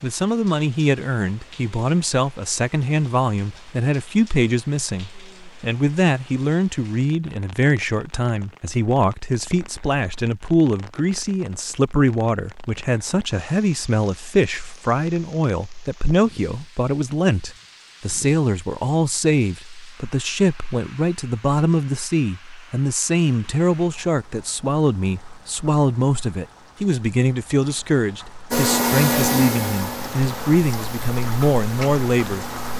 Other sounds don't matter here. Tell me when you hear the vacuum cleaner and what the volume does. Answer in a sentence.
The vacuum cleaner can be heard from 28.5 to 32.7 s, getting quieter.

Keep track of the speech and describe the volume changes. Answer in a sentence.
The volume of the speech stays about the same.